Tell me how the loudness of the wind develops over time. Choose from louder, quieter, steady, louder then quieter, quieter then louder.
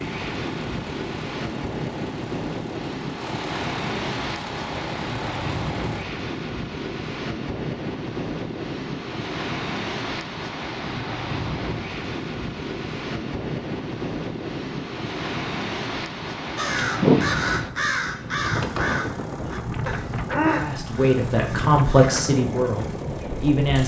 steady.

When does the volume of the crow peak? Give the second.
17 s.